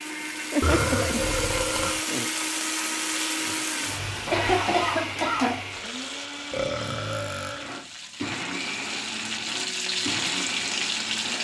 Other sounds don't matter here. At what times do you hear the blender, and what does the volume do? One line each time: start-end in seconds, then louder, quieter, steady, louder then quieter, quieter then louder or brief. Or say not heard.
0.0-11.3 steady.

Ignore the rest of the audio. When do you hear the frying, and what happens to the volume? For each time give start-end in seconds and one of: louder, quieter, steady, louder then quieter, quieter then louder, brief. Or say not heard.
0.0-11.3 quieter then louder.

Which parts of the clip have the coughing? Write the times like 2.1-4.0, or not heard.
4.3-5.7.